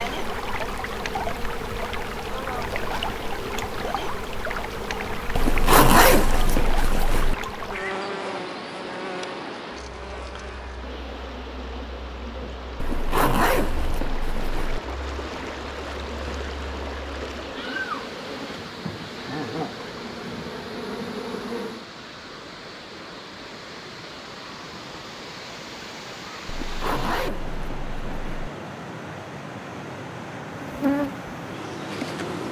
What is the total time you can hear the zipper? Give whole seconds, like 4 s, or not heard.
6 s.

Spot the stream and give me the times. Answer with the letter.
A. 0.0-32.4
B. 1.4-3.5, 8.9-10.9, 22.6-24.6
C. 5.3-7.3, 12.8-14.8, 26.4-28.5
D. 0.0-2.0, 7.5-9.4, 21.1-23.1
A.